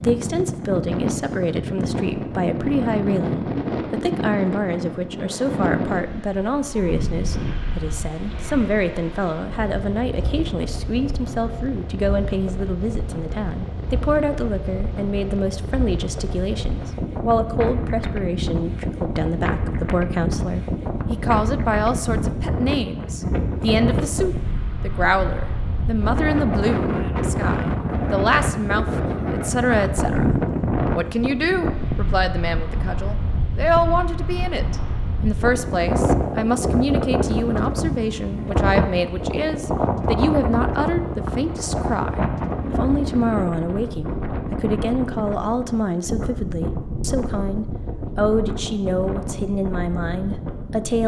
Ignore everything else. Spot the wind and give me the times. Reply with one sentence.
The wind can be heard from 0.0 to 51.0 s.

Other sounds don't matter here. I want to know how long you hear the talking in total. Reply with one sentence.
You can hear the talking for 51 seconds altogether.